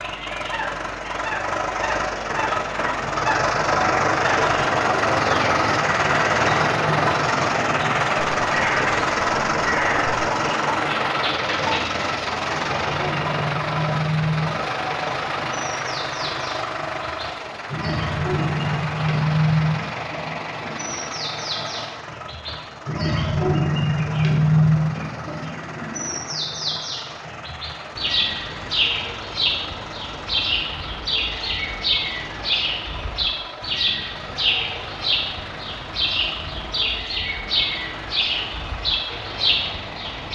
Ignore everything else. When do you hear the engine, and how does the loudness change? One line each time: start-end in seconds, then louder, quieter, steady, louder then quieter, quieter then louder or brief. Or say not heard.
0.0-40.3 quieter.